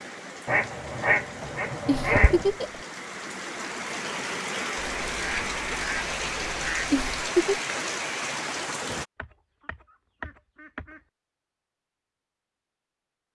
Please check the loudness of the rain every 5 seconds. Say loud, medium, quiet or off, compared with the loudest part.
medium, loud, off.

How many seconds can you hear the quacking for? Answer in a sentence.
You can hear the quacking for 6 seconds altogether.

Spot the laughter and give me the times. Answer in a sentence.
The laughter can be heard from 1.9 to 2.8 s and from 6.9 to 7.6 s.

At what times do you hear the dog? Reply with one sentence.
The dog can't be heard in this clip.